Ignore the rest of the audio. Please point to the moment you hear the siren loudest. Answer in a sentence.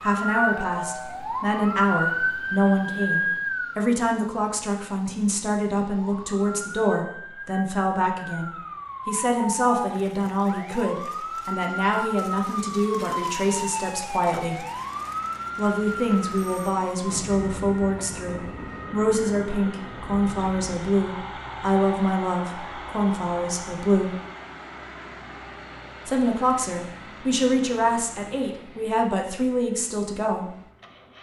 The loudest moment of the siren is at 2 seconds.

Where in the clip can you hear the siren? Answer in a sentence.
The siren can be heard from 0.0 to 3.9 s and from 6.0 to 23.8 s.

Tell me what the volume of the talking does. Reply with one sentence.
The loudness of the talking stays about the same.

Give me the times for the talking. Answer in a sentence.
You can hear the talking from 0.0 to 14.7 s, from 15.6 to 24.1 s and from 26.1 to 30.5 s.